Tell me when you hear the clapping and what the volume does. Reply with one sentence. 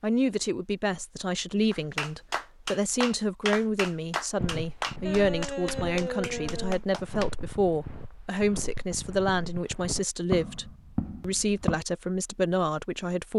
You can hear the clapping from 1.7 to 7.3 s, at a steady volume.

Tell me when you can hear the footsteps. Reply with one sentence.
The footsteps can be heard from 4.3 to 11.8 s.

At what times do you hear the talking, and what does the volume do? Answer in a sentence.
The talking can be heard from 0.0 to 13.3 s, at a steady volume.